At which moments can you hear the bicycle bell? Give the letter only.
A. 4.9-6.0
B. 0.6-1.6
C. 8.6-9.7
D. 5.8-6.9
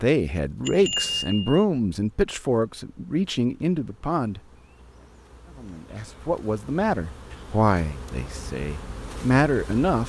B.